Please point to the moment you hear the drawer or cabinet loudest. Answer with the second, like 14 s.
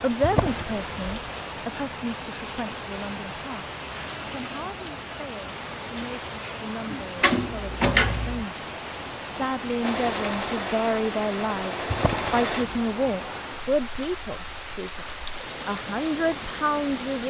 8 s.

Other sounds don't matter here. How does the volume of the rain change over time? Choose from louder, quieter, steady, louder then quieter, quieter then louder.
steady.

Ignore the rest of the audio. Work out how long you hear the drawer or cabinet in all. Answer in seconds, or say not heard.
3 s.